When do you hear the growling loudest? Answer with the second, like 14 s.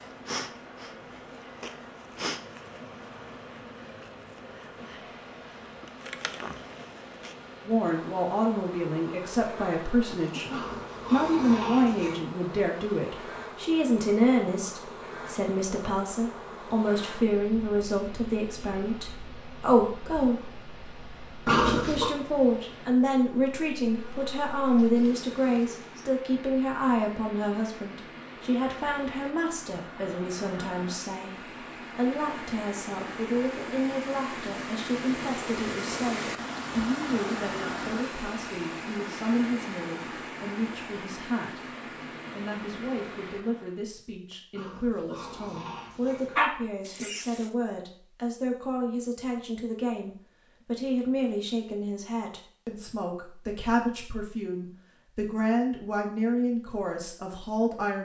22 s.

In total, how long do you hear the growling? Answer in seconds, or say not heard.
4 s.